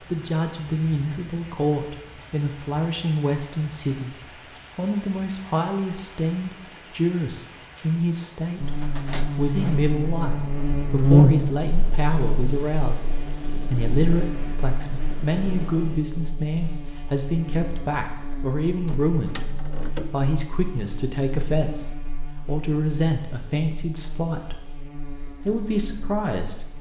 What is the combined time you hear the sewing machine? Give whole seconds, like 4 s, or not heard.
not heard.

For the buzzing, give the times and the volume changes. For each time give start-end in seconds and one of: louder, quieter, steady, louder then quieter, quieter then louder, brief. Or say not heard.
8.6-26.7 quieter.